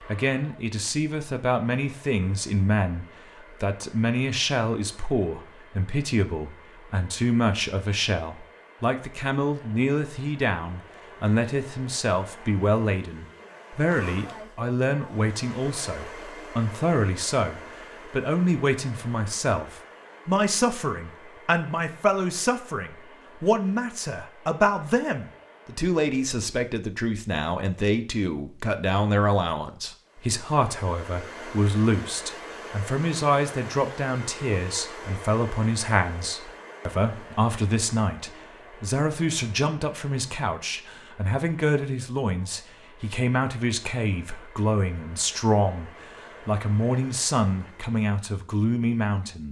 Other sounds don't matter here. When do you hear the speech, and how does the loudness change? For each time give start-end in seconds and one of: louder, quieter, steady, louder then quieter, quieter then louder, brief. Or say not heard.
0.1-49.4 steady.